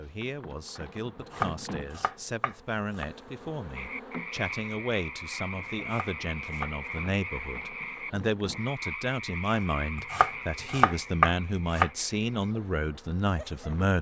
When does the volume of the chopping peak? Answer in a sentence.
The volume of the chopping peaks at 11 seconds.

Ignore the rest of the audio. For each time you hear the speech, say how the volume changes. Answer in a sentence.
The speech can be heard from 0.0 to 13.9 s, getting louder.